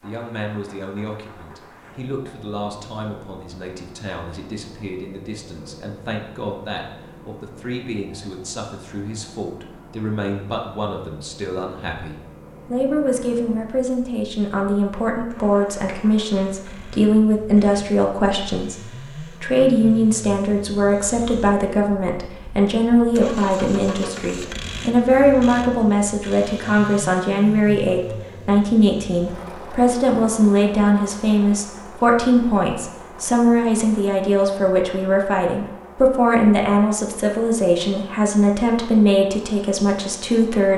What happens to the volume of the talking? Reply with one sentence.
The volume of the talking goes up.